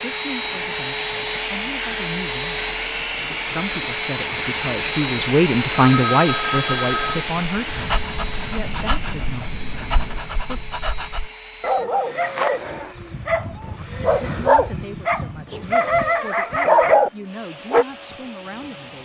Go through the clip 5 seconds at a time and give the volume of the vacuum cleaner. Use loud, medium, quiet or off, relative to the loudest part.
loud, loud, quiet, quiet.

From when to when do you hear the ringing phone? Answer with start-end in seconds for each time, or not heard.
5.7-7.2.